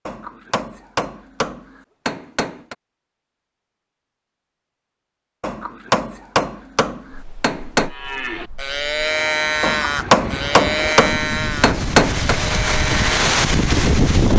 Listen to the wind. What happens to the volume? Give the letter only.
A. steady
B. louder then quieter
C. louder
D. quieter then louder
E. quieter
C.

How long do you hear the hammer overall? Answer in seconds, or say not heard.
8 s.